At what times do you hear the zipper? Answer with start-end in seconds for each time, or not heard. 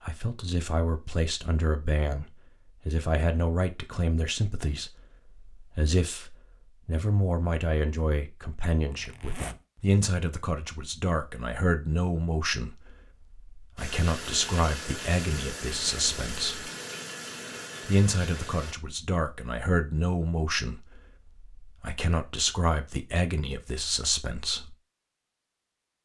8.9-9.7.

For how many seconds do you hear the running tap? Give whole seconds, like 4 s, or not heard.
5 s.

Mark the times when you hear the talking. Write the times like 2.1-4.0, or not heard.
0.0-16.7, 17.9-24.8.